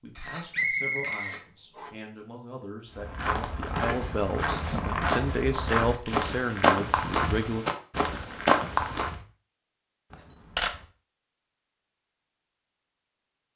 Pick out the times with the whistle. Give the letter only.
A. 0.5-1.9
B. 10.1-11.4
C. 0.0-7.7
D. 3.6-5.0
A.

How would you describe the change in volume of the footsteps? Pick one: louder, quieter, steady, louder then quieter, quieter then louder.
louder.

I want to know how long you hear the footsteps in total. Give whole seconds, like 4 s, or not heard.
6 s.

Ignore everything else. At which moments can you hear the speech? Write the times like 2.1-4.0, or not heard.
0.0-7.7.